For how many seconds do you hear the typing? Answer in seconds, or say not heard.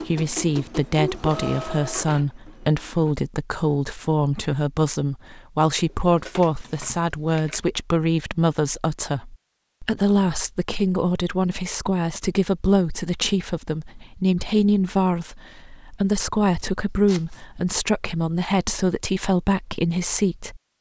not heard.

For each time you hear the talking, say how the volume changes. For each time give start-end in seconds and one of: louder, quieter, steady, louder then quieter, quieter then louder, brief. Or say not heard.
0.1-20.6 steady.